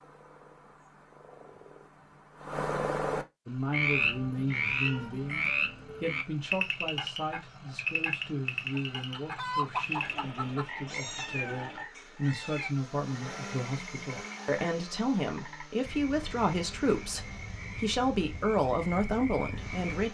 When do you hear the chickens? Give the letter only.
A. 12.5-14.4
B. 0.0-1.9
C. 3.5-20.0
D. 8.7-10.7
D.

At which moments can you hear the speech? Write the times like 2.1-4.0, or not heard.
3.5-20.0.